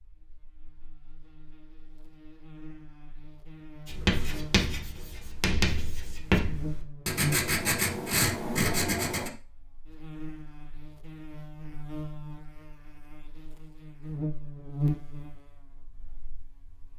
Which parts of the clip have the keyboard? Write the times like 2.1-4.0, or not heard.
not heard.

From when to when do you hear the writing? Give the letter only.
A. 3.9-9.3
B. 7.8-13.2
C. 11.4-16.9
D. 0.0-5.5
A.